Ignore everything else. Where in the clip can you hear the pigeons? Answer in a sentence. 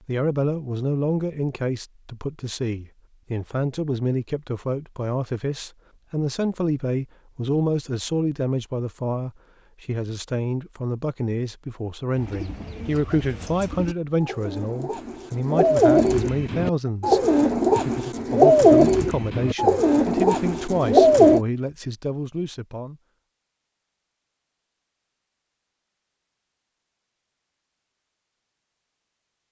You can hear the pigeons from 12.2 to 21.4 s.